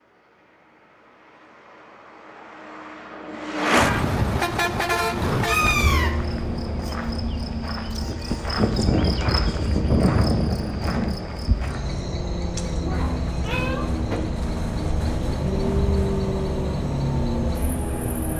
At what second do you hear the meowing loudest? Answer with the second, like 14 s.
6 s.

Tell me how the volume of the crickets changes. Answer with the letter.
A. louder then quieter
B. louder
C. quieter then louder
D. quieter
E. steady
A.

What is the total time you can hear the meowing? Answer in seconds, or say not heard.
2 s.